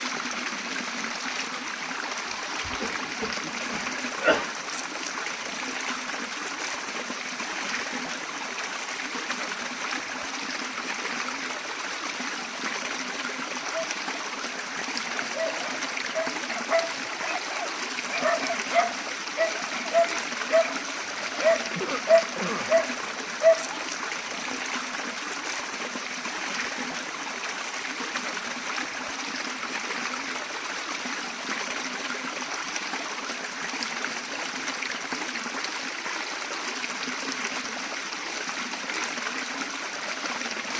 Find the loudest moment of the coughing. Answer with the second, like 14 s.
4 s.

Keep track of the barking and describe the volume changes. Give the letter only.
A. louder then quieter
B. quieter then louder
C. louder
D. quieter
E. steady
C.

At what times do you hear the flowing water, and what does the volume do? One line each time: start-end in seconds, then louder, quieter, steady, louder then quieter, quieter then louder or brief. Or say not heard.
0.0-40.7 steady.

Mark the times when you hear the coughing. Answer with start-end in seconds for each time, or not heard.
2.3-4.5, 21.8-22.7.